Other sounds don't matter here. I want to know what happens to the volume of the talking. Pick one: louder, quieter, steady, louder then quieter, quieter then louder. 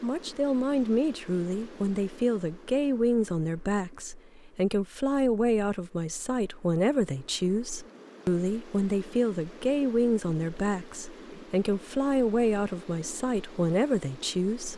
steady.